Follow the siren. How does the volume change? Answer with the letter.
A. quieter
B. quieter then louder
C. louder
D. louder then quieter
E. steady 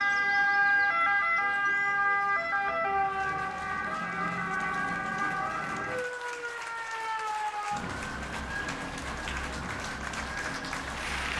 A.